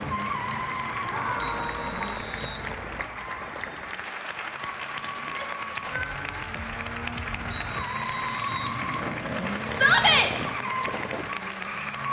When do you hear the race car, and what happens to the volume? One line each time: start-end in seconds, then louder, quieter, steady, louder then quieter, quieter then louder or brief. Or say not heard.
0.0-12.0 quieter then louder.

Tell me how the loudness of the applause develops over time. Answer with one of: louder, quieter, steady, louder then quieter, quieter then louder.
steady.